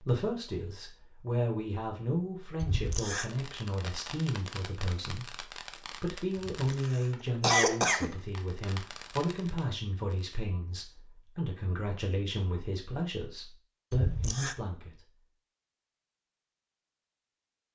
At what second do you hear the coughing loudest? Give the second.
8 s.